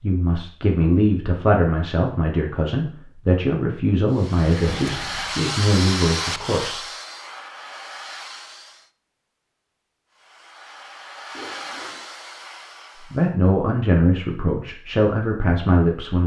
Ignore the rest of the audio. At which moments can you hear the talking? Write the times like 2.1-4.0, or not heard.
0.0-6.8, 13.0-16.2.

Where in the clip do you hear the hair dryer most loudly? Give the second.
6 s.